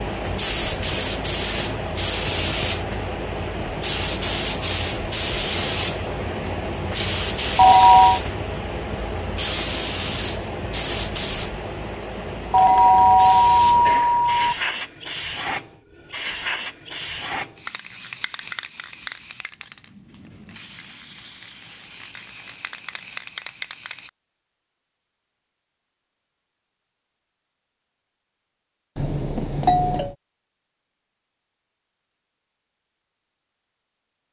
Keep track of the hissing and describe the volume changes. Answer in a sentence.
The volume of the hissing goes down.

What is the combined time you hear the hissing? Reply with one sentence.
The hissing can be heard for 24 seconds in total.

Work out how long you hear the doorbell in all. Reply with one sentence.
The doorbell can be heard for 4 seconds in total.